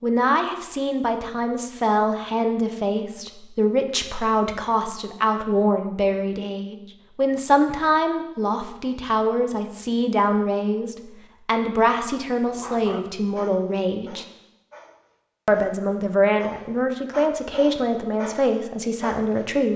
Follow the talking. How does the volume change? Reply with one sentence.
The loudness of the talking stays about the same.